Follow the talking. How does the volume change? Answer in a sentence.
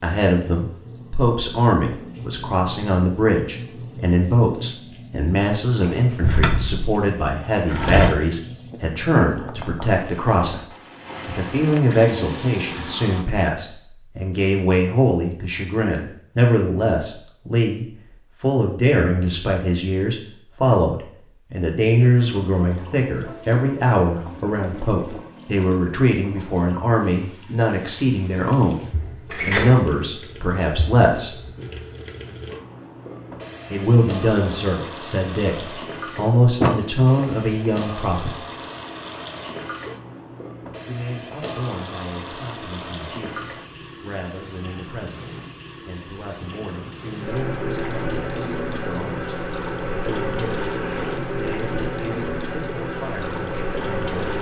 The loudness of the talking goes down.